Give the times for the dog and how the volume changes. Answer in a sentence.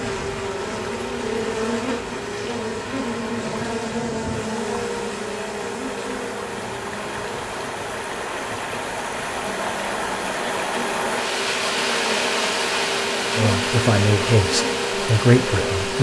The dog can't be heard in this clip.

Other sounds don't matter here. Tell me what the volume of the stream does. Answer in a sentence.
The volume of the stream goes up.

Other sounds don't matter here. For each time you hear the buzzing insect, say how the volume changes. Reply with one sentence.
You can hear the buzzing insect from 0.0 to 15.9 s, getting quieter then louder.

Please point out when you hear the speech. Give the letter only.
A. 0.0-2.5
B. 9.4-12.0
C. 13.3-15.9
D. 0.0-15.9
C.